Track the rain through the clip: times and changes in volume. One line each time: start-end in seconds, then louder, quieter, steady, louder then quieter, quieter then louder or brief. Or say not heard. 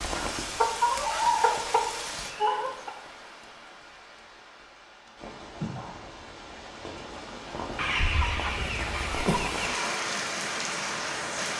0.0-11.5 quieter then louder.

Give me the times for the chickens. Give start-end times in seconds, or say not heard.
0.1-2.9, 7.8-9.8.